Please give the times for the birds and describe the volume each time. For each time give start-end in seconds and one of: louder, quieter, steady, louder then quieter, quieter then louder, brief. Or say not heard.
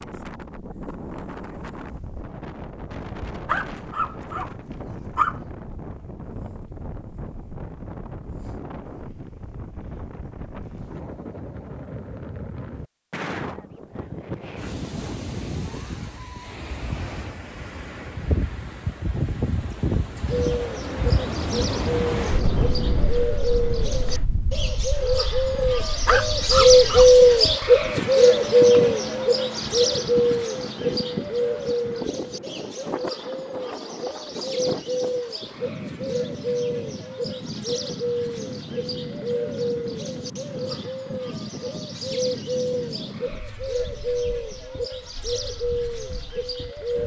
20.2-47.0 louder then quieter.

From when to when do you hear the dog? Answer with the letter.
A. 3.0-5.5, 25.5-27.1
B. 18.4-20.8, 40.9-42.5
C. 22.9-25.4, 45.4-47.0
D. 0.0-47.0
A.